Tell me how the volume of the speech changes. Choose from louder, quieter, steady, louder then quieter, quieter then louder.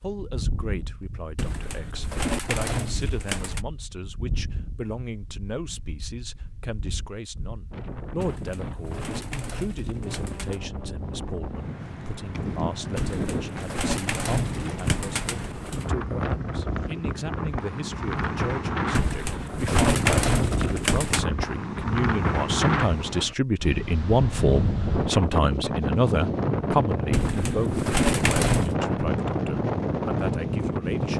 louder.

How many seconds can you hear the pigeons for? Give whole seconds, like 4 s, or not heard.
12 s.